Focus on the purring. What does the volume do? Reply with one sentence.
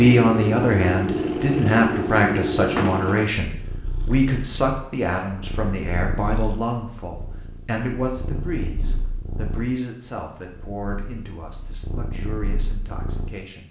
The loudness of the purring goes down.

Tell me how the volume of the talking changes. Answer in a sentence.
The volume of the talking goes down.